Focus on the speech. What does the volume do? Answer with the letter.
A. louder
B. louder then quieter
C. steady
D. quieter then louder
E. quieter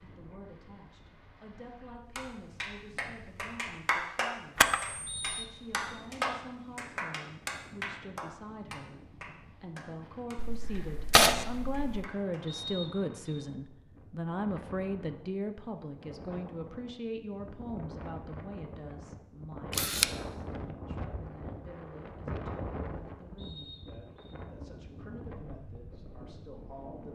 B.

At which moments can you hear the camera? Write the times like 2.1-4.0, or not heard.
4.5-5.4, 10.3-12.1, 19.7-20.1.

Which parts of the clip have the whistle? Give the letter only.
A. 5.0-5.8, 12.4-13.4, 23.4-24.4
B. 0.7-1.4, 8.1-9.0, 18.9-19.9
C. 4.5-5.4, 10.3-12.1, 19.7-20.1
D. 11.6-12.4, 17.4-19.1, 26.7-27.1
A.